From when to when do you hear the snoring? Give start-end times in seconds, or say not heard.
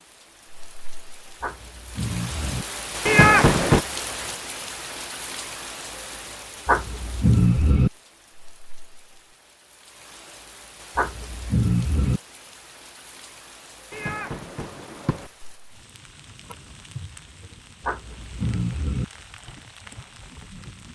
1.4-2.6, 6.7-7.9, 10.9-12.2, 17.8-19.1.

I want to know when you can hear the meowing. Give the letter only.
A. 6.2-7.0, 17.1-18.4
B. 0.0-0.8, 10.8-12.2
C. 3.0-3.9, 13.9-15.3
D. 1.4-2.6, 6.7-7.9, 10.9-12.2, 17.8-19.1
C.